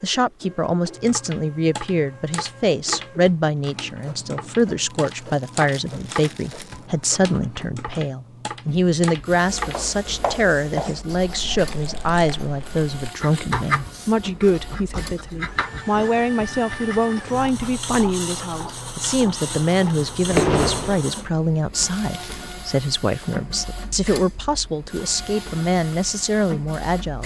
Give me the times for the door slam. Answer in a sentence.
You can hear the door slam from 19.5 to 21.1 s.